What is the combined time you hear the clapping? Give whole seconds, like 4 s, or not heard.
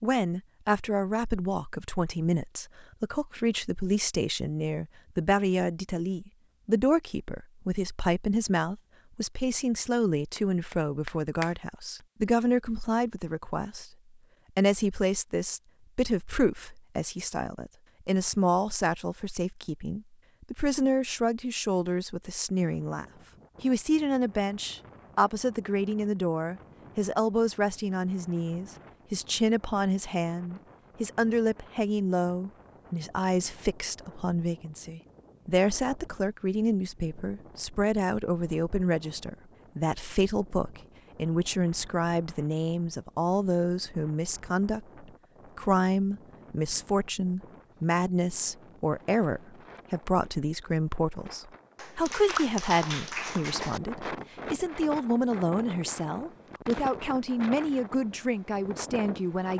3 s.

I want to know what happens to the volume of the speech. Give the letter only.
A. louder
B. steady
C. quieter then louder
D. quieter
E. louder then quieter
B.